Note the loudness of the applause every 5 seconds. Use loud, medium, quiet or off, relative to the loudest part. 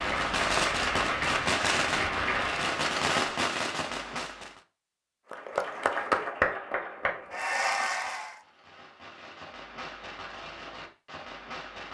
loud, loud, off.